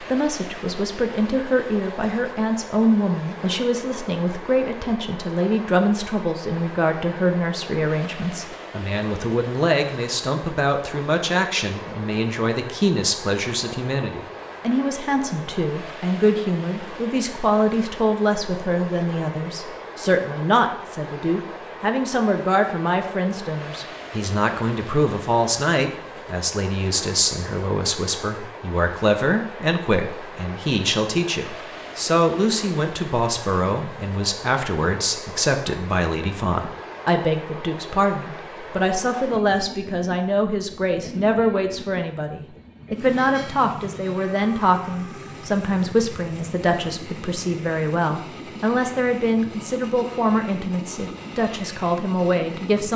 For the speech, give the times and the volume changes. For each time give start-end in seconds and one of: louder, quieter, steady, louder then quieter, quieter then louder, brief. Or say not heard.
0.0-52.9 steady.